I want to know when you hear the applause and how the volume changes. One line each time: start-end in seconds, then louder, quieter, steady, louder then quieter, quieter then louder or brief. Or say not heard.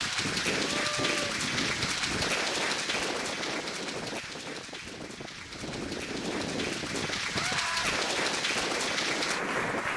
0.0-9.9 quieter then louder.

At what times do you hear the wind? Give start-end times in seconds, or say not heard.
0.0-9.9.